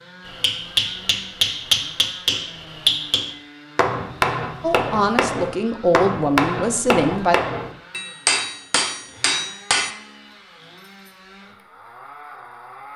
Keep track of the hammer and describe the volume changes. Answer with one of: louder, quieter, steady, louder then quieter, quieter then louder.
steady.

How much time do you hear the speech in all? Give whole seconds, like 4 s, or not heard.
3 s.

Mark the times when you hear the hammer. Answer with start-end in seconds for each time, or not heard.
0.2-9.9.